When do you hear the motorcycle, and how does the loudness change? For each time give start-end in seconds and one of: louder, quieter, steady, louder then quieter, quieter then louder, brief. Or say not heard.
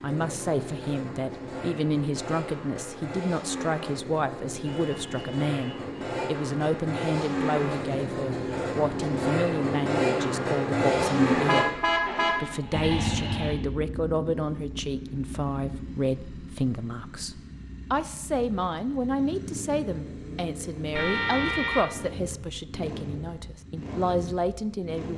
0.0-25.1 louder then quieter.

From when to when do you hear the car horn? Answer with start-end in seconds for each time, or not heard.
4.7-6.3, 11.4-12.4, 20.9-22.2.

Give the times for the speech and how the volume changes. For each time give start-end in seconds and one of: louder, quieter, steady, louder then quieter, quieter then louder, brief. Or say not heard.
0.0-25.1 steady.